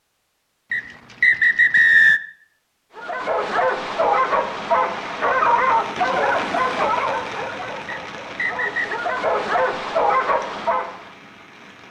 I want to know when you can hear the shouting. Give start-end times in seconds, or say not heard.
not heard.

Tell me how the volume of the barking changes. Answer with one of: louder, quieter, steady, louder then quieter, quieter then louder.
quieter then louder.